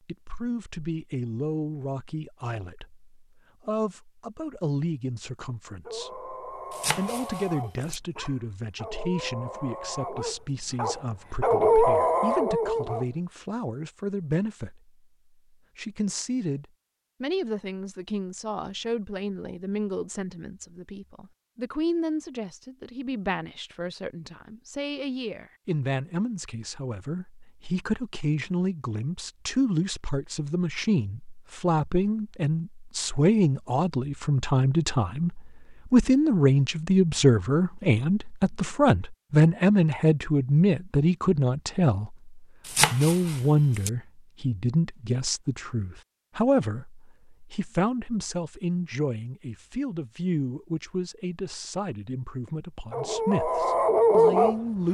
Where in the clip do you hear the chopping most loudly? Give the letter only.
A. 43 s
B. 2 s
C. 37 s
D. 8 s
A.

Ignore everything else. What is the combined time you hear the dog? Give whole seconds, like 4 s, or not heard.
9 s.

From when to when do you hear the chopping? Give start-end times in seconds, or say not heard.
6.7-8.0, 42.6-43.9.